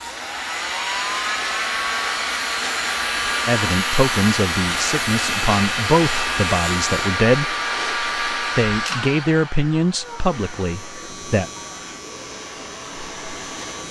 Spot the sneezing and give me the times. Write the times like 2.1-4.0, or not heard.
not heard.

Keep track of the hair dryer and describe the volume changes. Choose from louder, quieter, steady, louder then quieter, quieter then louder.
quieter.